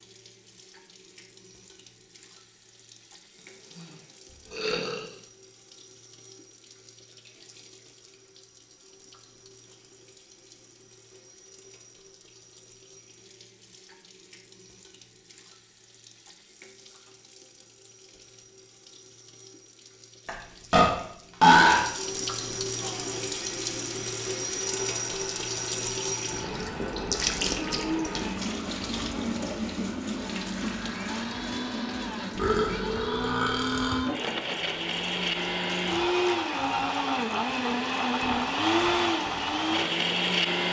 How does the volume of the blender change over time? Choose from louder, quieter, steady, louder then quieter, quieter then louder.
louder.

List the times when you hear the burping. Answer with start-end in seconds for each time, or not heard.
4.5-5.0, 20.2-21.9, 32.4-34.0.